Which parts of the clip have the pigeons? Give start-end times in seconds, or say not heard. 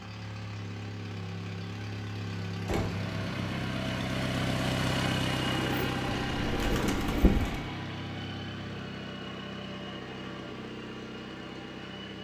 5.5-7.6.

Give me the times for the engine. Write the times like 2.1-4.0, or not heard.
0.0-12.1.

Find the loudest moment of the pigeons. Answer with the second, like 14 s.
7 s.